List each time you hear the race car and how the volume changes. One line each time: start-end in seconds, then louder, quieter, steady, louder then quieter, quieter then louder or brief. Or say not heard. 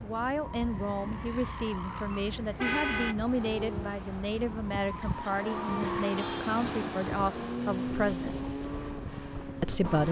0.0-10.0 louder.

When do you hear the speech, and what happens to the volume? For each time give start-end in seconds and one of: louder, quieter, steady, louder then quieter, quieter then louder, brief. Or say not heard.
0.0-8.4 steady
9.6-10.0 brief.